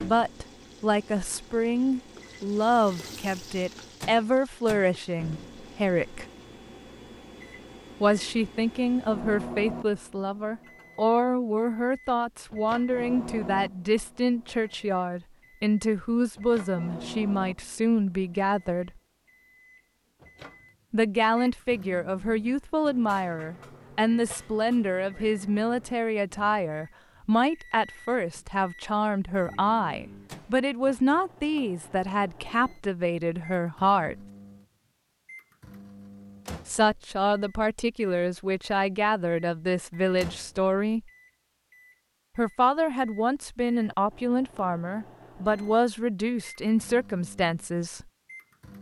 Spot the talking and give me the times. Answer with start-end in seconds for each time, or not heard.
0.0-6.2, 8.0-18.9, 20.9-34.1, 36.6-41.0, 42.4-48.0.